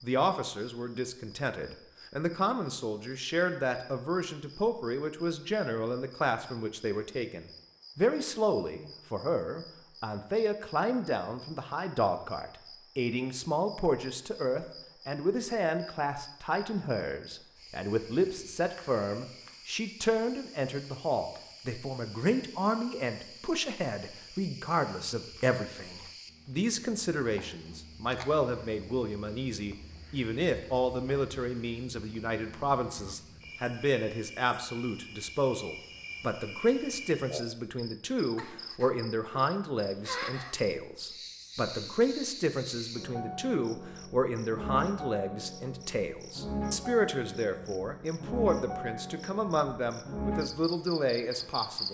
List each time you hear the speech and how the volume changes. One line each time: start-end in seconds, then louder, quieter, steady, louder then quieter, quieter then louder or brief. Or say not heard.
0.0-51.8 steady.